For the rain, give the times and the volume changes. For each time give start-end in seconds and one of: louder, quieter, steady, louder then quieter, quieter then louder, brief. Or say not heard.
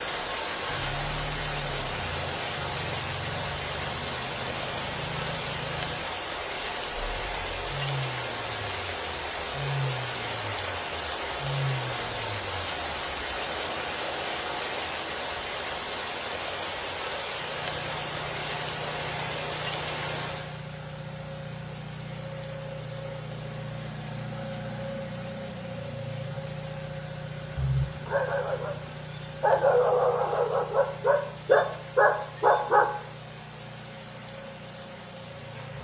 0.0-35.7 quieter.